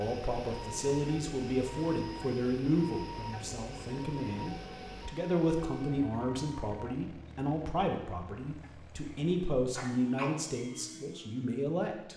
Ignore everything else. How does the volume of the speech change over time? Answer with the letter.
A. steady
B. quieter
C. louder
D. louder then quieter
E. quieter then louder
A.